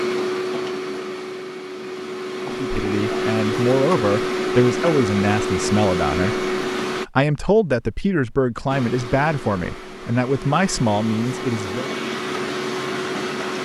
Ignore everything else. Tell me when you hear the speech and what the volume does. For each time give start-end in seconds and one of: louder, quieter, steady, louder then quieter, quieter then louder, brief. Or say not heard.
2.5-11.9 steady.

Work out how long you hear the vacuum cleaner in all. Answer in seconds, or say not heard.
12 s.